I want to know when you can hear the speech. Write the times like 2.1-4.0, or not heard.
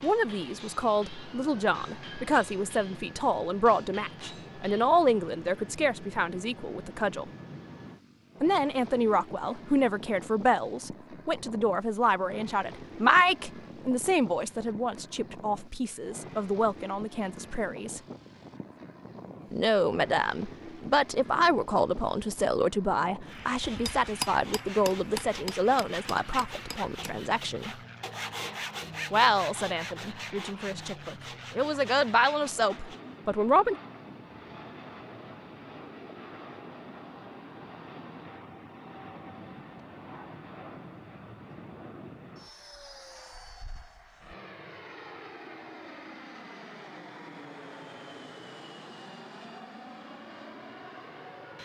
0.0-7.2, 8.4-18.0, 19.5-27.8, 29.1-33.8.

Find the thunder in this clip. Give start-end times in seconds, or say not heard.
not heard.